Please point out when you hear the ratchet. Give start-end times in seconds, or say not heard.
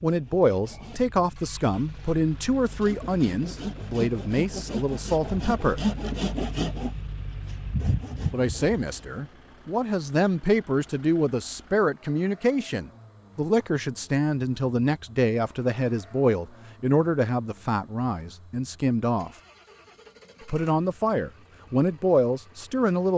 not heard.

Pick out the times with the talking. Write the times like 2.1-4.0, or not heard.
0.0-5.8, 8.3-19.3, 20.4-23.1.